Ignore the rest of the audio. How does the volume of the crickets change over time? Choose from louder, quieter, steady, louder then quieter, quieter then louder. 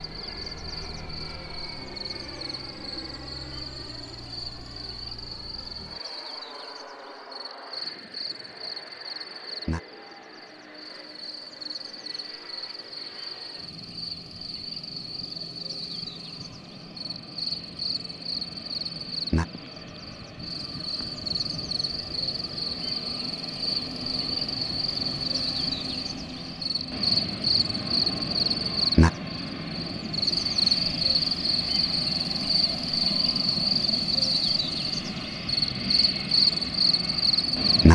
louder.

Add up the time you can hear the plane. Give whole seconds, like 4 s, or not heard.
38 s.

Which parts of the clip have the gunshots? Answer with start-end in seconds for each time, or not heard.
not heard.